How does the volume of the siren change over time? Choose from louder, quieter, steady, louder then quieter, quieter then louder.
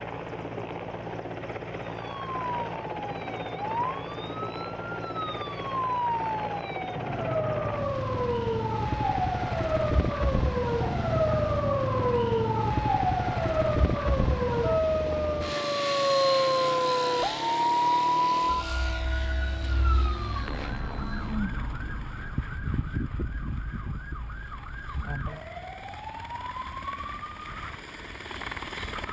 louder then quieter.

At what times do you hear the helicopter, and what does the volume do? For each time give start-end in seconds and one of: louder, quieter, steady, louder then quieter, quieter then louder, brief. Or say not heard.
0.0-29.0 quieter.